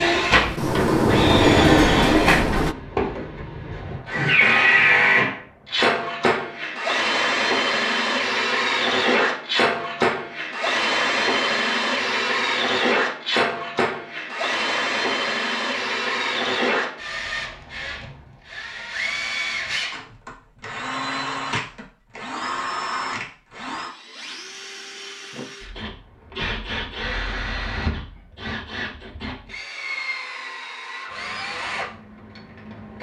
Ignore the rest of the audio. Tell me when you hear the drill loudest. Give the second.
5 s.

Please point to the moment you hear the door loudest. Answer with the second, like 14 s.
2 s.